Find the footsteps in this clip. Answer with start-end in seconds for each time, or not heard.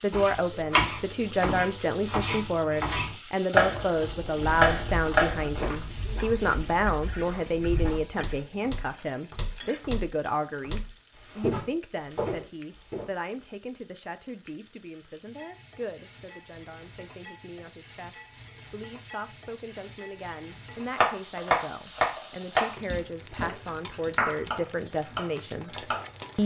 3.9-13.1.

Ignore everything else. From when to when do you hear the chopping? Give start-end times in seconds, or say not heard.
0.1-5.5, 20.9-26.1.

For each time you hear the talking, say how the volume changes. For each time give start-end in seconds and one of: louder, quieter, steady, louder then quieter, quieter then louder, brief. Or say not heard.
0.0-26.4 quieter then louder.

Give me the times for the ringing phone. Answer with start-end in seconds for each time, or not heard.
not heard.